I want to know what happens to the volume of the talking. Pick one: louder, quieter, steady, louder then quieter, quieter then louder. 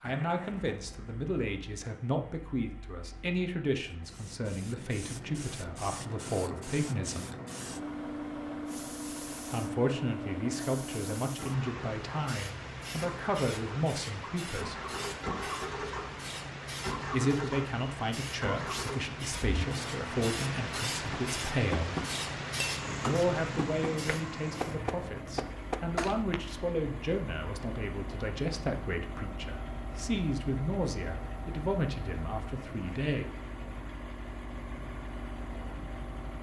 steady.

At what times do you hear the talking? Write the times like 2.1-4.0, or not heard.
0.0-7.3, 9.5-14.8, 17.1-22.1, 23.0-33.4.